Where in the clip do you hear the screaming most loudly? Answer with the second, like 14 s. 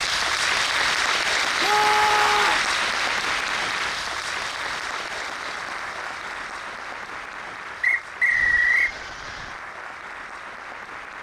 2 s.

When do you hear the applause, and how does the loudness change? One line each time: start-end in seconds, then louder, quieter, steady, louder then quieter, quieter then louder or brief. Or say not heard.
0.0-11.1 quieter.